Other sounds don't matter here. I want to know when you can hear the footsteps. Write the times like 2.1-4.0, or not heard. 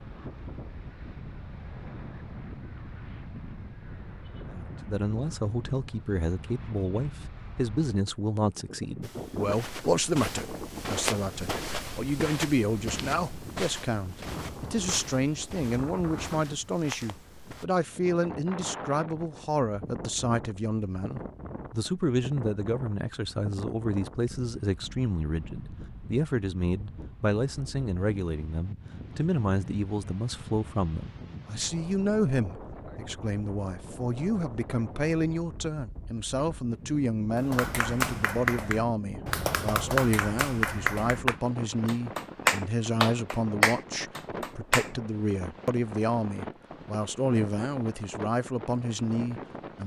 9.0-17.6.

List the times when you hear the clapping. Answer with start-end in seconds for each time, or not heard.
37.4-44.9.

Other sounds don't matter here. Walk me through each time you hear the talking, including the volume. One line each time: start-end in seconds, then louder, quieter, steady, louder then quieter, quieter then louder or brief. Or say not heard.
4.5-49.8 steady.